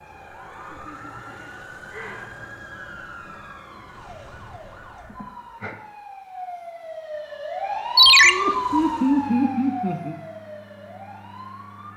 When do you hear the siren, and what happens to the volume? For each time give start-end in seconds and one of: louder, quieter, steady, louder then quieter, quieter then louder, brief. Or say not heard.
0.0-11.9 louder then quieter.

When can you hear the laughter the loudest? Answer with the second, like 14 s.
9 s.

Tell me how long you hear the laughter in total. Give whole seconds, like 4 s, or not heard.
4 s.